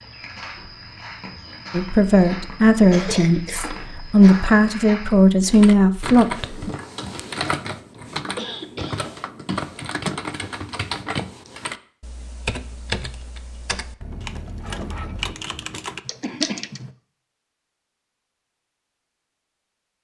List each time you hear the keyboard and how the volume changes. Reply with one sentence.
The keyboard can be heard from 5.4 to 16.9 s, at a steady volume.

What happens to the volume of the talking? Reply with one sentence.
The volume of the talking goes down, then up.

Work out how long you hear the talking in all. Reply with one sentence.
You can hear the talking for 5 seconds altogether.